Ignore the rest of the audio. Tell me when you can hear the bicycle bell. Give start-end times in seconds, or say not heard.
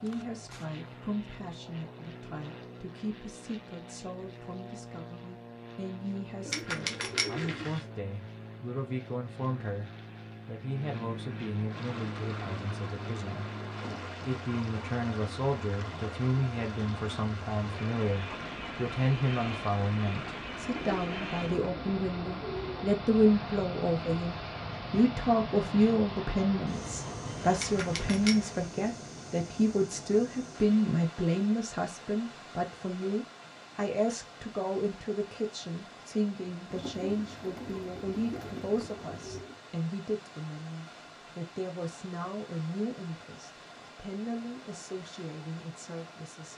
6.5-7.8, 27.6-28.5.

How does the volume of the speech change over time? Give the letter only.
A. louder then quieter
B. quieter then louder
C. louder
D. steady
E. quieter
A.